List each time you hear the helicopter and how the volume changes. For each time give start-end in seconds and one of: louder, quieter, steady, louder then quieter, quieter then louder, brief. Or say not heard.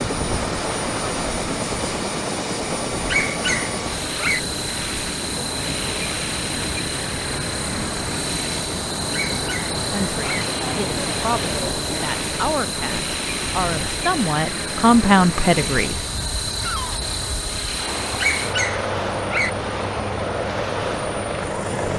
0.0-21.9 steady.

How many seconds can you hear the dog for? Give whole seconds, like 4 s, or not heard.
4 s.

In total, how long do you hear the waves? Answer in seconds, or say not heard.
22 s.